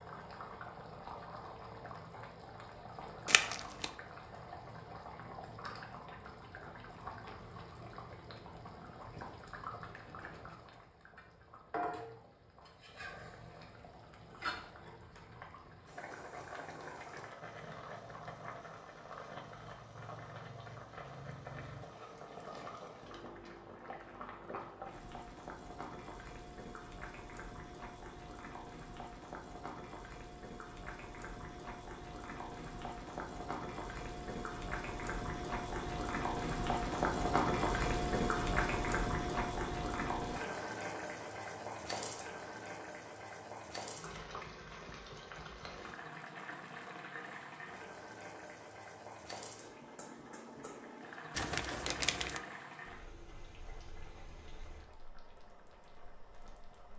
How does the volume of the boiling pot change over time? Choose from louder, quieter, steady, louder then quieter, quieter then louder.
louder then quieter.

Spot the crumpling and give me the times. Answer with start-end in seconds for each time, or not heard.
3.2-3.9, 51.4-52.4.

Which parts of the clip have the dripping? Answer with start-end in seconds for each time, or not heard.
not heard.